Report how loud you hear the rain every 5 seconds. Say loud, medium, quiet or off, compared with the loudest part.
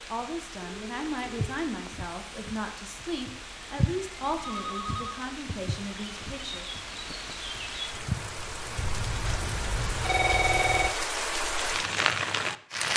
quiet, medium, loud.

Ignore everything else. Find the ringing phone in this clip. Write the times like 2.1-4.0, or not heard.
0.1-1.5, 4.4-5.2, 8.8-10.9.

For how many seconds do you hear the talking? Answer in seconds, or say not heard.
7 s.